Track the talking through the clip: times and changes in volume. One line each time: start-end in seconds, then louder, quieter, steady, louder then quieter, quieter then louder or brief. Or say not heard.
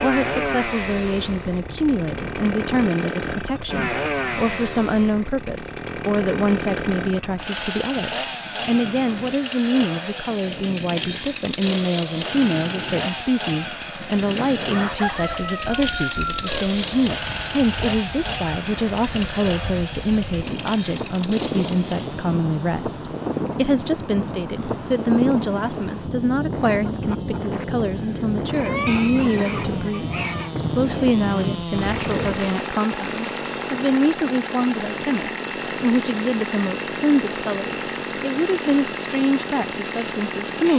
0.0-40.7 steady.